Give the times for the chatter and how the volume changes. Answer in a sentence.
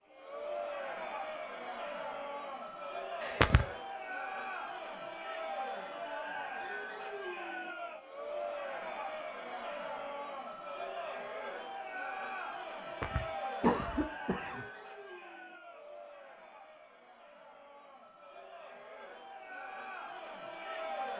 The chatter can be heard from 0.0 to 21.1 s, getting quieter.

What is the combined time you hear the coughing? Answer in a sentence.
You can hear the coughing for 2 seconds altogether.